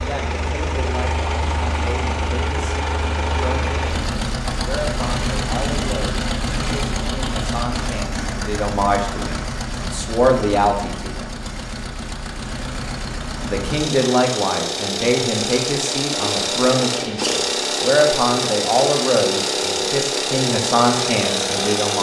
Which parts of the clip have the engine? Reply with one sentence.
You can hear the engine from 0.0 to 21.9 s.